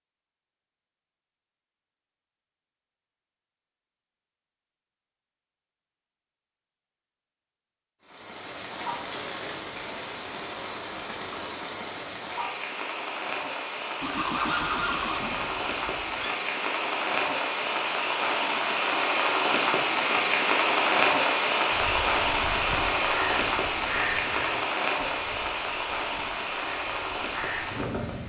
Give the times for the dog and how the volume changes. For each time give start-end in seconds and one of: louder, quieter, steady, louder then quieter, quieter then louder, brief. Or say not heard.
not heard.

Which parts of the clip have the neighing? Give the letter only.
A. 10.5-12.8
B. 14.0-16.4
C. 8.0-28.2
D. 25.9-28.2
B.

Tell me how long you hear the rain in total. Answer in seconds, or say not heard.
20 s.